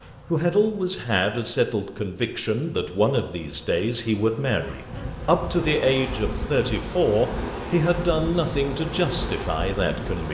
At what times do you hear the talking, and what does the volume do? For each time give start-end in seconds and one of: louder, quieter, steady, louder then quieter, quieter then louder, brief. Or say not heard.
0.3-10.2 steady.